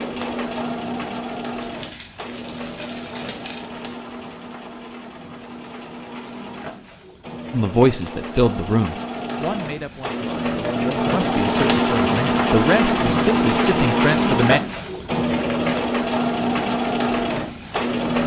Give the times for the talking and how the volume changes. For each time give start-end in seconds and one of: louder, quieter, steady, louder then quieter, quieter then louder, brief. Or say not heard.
7.5-14.6 quieter then louder.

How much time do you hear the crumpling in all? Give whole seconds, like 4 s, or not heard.
2 s.